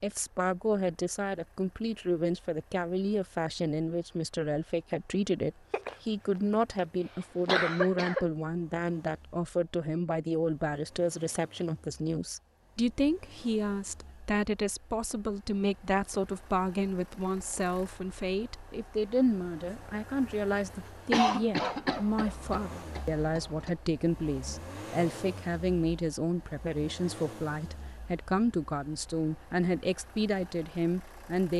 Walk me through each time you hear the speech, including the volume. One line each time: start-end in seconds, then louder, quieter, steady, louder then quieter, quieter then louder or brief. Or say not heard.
0.0-31.5 steady.